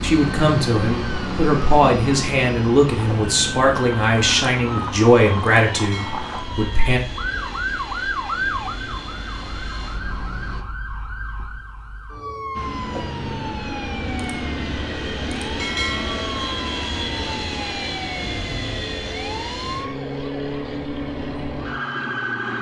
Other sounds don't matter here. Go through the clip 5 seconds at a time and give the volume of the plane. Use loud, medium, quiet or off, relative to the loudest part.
loud, medium, loud, loud, medium.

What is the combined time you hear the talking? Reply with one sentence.
You can hear the talking for 7 seconds altogether.